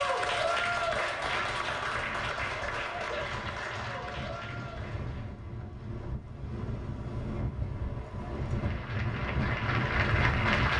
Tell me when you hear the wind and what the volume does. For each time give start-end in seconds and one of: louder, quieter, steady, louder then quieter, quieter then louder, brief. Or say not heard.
0.0-10.7 louder.